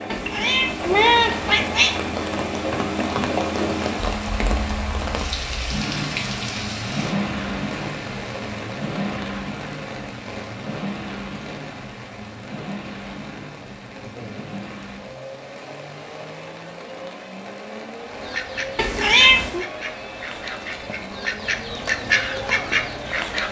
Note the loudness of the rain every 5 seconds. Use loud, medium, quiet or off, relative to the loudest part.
loud, loud, medium, medium, medium.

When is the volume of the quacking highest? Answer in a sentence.
The loudest moment of the quacking is at 22 seconds.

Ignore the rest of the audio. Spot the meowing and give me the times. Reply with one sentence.
You can hear the meowing from 0.1 to 2.0 s and from 18.8 to 19.6 s.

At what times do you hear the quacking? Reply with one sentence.
You can hear the quacking from 18.1 to 23.4 s.